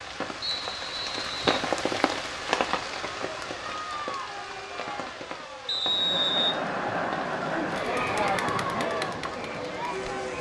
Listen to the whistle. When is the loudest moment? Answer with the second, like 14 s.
6 s.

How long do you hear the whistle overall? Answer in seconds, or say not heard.
2 s.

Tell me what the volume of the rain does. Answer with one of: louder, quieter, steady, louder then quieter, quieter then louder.
quieter.